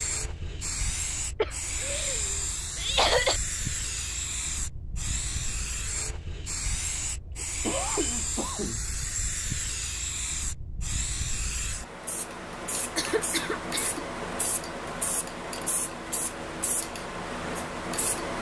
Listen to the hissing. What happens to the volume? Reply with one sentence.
The loudness of the hissing stays about the same.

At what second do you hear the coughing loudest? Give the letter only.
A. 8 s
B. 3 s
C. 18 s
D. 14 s
B.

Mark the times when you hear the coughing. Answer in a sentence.
The coughing can be heard from 1.4 to 3.4 s, from 7.3 to 8.8 s and from 12.9 to 14.0 s.